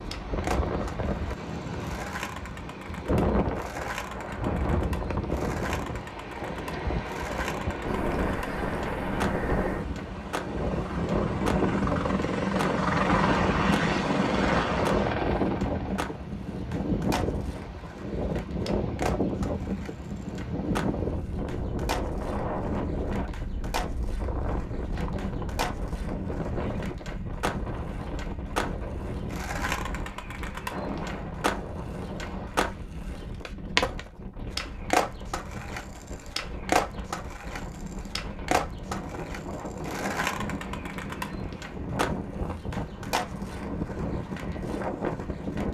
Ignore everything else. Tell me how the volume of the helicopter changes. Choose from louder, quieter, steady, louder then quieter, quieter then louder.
louder.